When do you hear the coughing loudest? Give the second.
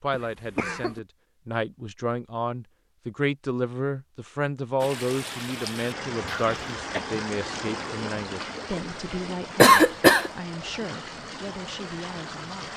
10 s.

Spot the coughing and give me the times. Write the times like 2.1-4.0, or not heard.
0.1-1.0, 6.2-7.0, 9.6-10.3.